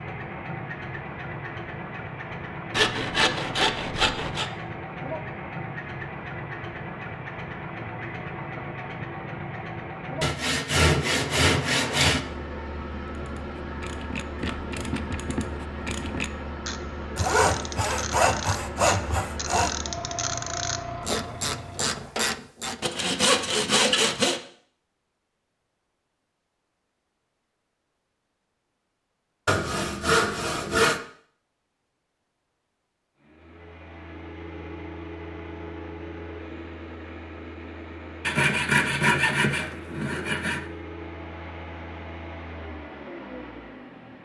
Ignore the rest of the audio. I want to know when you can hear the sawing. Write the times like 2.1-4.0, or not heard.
2.7-4.5, 10.2-12.2, 17.1-19.7, 22.8-24.4, 29.4-31.0, 38.2-40.6.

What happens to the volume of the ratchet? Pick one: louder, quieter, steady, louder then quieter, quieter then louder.
louder.